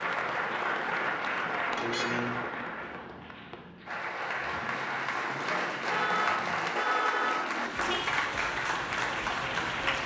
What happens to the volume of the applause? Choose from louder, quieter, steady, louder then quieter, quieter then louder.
quieter then louder.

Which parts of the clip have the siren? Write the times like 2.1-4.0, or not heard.
not heard.